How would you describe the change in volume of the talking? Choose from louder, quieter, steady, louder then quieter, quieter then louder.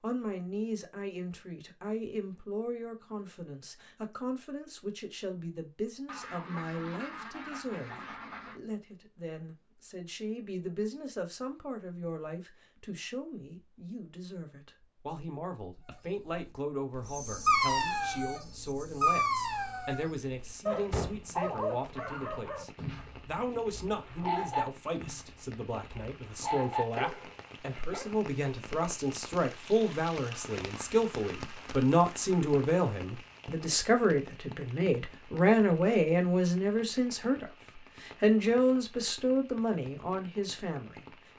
louder.